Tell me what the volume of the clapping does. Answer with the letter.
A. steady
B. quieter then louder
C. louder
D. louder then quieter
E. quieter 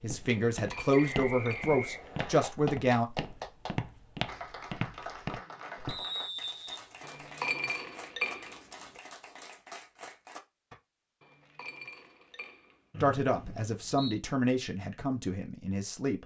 E.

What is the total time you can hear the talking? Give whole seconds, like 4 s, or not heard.
6 s.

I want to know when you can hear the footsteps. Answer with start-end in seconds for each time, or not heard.
0.0-6.0.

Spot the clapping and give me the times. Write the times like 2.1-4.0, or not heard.
2.1-10.8.